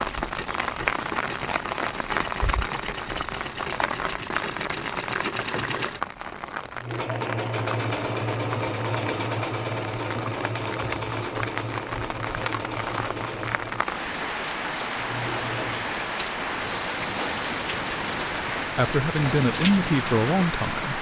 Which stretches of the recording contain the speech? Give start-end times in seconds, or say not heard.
18.8-20.9.